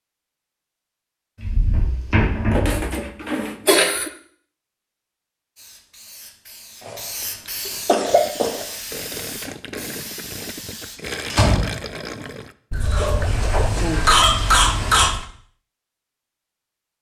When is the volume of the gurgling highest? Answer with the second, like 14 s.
11 s.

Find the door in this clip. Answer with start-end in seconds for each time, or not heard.
1.4-3.0, 11.3-12.2.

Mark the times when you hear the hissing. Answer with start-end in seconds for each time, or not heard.
5.5-11.0.